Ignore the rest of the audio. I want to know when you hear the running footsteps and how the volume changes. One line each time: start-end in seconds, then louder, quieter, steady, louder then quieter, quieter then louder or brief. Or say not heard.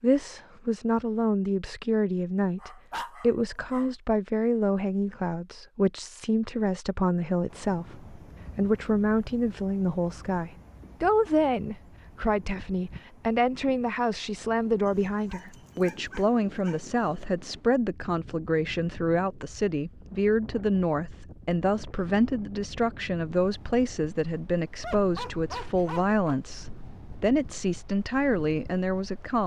not heard.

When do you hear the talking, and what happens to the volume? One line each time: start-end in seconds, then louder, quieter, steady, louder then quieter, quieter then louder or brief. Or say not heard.
0.0-29.4 steady.